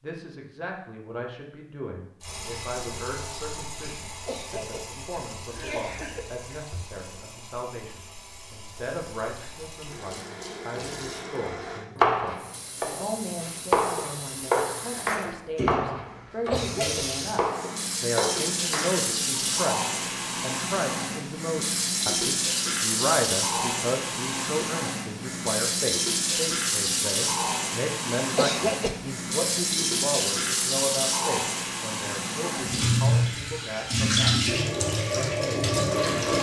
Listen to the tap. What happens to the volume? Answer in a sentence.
The volume of the tap goes up.